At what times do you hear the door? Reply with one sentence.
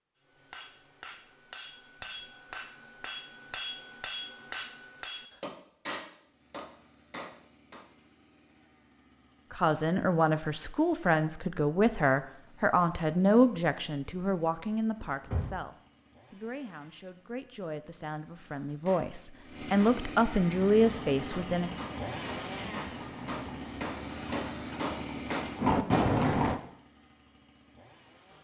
You can hear the door from 15.0 to 15.6 s.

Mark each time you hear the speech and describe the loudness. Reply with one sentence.
The speech can be heard from 9.5 to 21.7 s, getting quieter then louder.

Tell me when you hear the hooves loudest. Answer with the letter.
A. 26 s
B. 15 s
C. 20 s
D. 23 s
A.